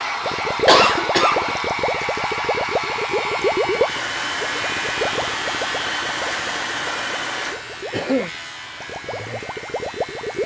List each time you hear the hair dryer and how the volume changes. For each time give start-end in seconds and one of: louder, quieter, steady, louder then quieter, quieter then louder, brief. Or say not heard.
0.0-10.4 quieter.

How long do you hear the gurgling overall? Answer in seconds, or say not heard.
10 s.